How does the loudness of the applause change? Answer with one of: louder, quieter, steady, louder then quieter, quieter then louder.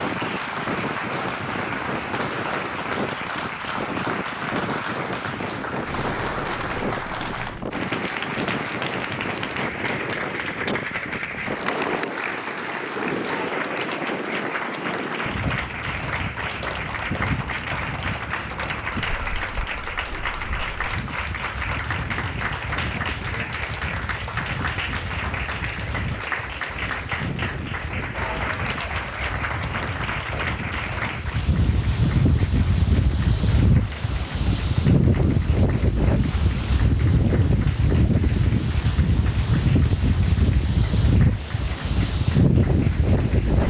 quieter.